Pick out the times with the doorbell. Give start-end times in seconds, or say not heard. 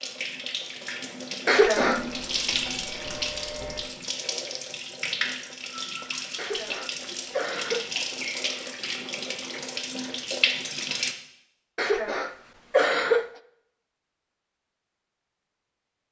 1.8-3.8.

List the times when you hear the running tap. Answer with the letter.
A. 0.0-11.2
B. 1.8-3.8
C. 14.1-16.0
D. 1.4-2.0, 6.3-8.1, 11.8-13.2
A.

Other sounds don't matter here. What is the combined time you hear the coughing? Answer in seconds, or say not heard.
4 s.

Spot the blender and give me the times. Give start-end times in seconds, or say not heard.
not heard.